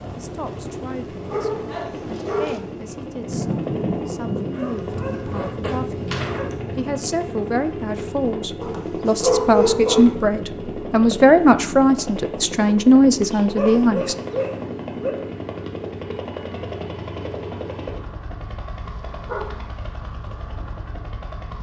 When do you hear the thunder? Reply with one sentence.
You can hear the thunder from 3.2 to 7.0 s.